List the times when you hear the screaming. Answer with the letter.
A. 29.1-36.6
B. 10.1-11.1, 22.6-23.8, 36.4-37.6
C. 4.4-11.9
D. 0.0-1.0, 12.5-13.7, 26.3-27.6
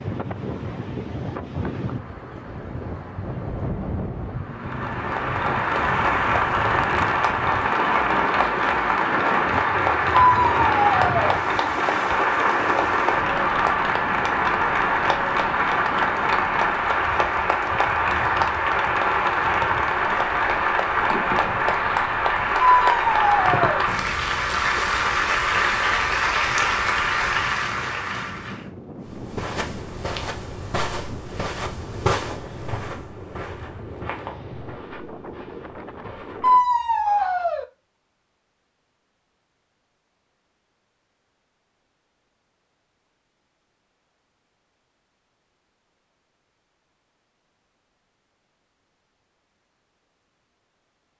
B.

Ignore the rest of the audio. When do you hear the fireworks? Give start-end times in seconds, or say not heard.
not heard.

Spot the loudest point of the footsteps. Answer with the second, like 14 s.
32 s.